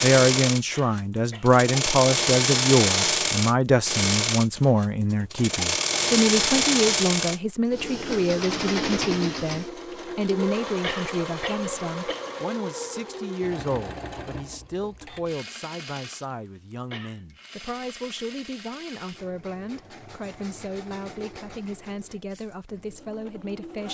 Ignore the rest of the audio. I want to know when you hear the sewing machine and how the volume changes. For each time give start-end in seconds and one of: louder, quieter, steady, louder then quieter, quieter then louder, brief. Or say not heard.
0.0-23.8 quieter.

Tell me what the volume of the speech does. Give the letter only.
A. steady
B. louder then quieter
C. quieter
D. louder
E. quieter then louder
C.